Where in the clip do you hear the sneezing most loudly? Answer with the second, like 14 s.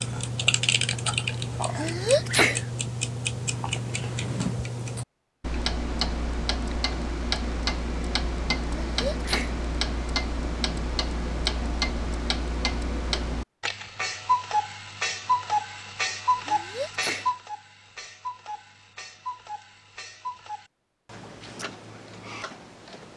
2 s.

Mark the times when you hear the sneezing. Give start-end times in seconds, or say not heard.
1.8-2.6, 8.8-9.6, 16.4-17.3.